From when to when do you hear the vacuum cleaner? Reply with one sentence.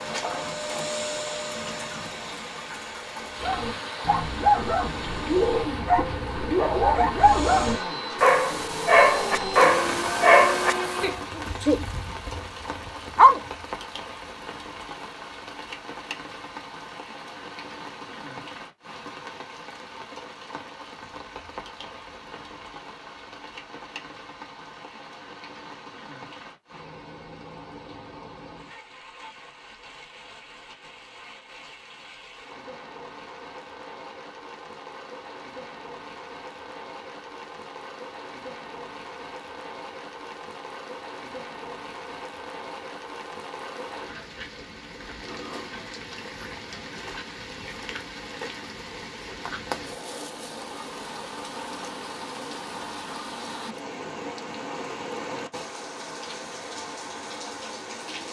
You can hear the vacuum cleaner from 0.0 to 5.5 s and from 7.2 to 11.2 s.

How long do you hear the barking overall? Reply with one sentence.
You can hear the barking for 10 seconds altogether.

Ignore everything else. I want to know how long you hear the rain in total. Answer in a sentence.
The rain can be heard for 58 seconds in total.